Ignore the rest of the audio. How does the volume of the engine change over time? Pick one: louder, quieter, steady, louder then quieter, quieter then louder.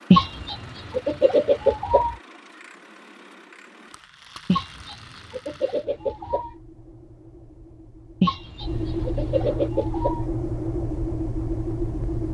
louder.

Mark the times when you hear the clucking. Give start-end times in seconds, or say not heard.
0.1-2.1, 4.5-6.5, 8.2-10.2.